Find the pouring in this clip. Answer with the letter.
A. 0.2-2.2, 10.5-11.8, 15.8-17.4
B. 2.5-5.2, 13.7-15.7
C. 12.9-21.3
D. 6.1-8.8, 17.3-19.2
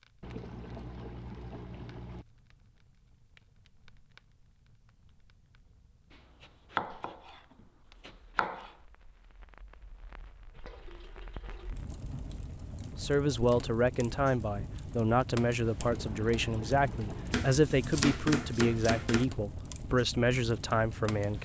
A.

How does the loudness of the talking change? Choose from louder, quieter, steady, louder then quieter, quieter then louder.
steady.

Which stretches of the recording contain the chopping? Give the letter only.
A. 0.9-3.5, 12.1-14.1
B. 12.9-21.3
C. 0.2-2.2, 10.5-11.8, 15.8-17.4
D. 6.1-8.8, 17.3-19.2
D.